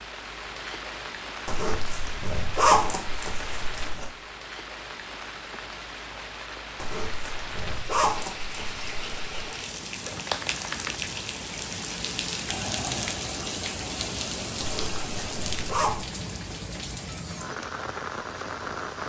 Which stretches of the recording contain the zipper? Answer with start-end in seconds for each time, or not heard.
1.4-4.1, 6.8-9.6, 14.6-16.1.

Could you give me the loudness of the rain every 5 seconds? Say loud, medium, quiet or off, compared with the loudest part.
medium, medium, loud, loud.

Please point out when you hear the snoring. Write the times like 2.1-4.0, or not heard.
not heard.